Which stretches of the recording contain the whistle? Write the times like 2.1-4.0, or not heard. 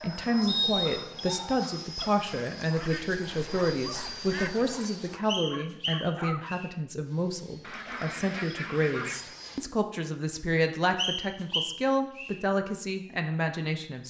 0.5-1.4, 5.2-6.7, 10.9-12.3.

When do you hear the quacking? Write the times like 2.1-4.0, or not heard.
2.8-4.8, 7.6-9.3.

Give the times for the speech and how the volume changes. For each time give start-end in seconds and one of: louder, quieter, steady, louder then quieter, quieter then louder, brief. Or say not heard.
0.0-14.0 steady.